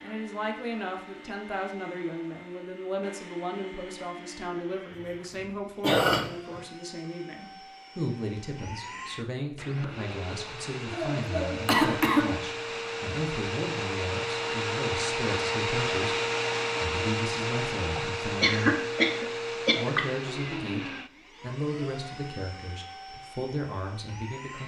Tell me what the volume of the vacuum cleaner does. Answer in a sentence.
The loudness of the vacuum cleaner goes up, then down.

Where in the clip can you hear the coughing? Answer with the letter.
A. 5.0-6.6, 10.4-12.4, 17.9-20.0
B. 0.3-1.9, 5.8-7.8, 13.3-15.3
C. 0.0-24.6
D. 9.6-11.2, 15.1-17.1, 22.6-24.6
A.